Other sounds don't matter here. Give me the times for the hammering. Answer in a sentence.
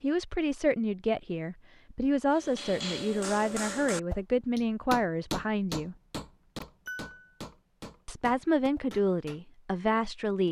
The hammering can be heard from 2.3 to 10.4 s.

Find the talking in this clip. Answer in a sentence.
The talking can be heard from 0.0 to 6.0 s and from 8.1 to 10.4 s.